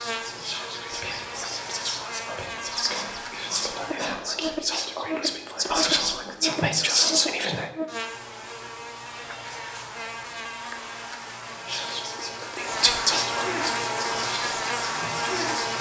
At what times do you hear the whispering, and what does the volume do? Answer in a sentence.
You can hear the whispering from 0.0 to 7.7 s, getting louder; and from 11.6 to 15.6 s, getting louder then quieter.